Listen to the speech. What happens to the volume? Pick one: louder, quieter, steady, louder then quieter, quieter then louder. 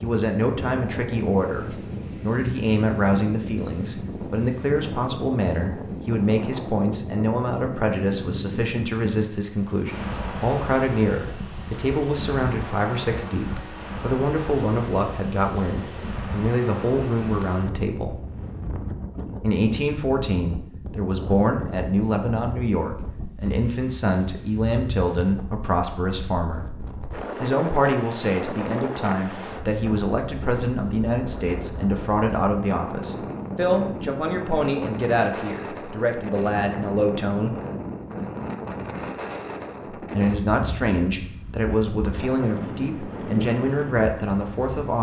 steady.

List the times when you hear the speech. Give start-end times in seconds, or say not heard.
0.0-18.2, 19.4-26.6, 27.4-37.5, 40.1-44.9.